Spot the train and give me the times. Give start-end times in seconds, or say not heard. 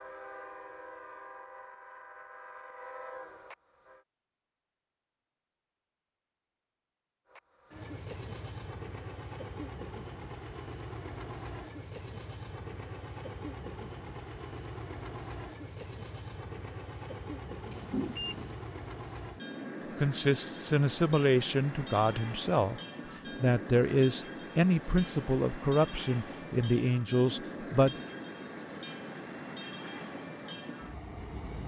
0.0-4.0, 7.3-31.6.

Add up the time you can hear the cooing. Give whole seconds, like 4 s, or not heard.
not heard.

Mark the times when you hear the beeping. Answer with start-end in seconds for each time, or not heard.
17.7-18.6.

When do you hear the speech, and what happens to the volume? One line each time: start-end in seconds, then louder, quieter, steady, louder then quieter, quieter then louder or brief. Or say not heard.
20.0-22.8 brief
23.4-28.0 steady.